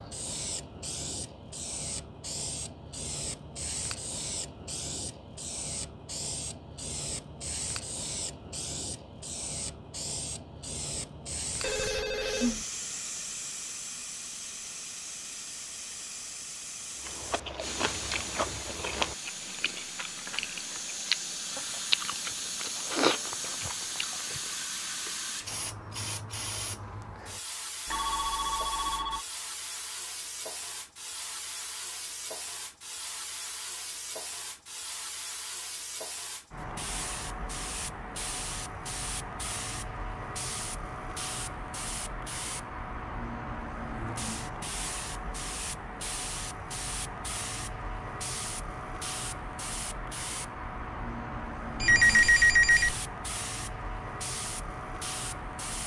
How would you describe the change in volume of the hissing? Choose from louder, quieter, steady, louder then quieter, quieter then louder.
steady.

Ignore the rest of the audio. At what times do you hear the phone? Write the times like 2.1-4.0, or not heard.
11.6-12.7, 27.9-29.2, 51.8-53.0.